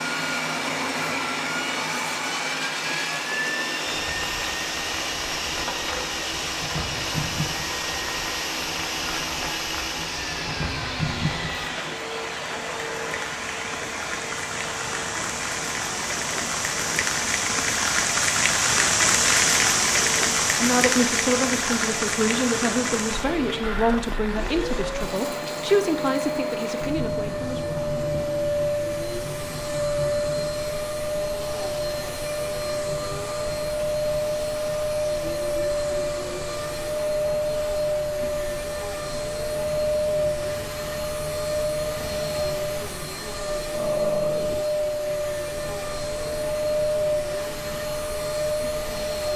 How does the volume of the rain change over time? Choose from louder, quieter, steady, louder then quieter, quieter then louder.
louder then quieter.